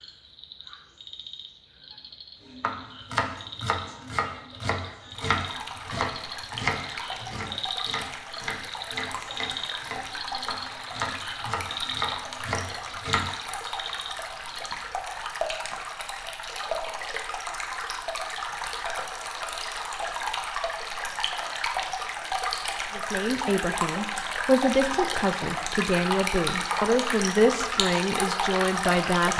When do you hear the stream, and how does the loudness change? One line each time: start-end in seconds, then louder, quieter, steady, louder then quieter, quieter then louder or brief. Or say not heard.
5.1-29.3 louder.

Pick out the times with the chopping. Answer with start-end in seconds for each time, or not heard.
2.5-13.3.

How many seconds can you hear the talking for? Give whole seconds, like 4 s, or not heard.
6 s.